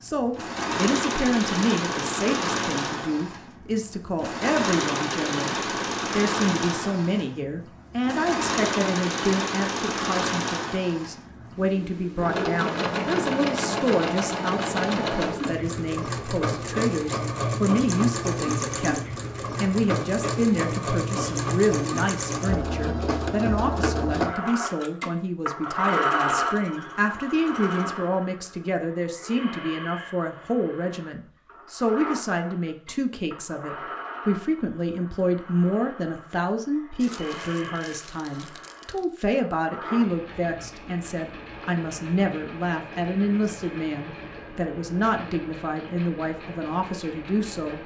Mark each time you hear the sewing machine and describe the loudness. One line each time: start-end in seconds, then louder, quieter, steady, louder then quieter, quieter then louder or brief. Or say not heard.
0.1-47.8 quieter.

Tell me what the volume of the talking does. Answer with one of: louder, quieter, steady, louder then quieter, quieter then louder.
steady.